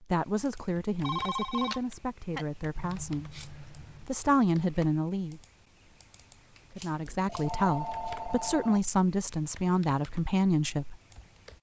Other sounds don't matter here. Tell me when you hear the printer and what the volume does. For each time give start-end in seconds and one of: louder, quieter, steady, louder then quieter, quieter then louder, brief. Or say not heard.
not heard.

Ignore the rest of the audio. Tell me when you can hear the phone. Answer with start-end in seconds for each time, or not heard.
1.0-2.5, 7.0-8.8.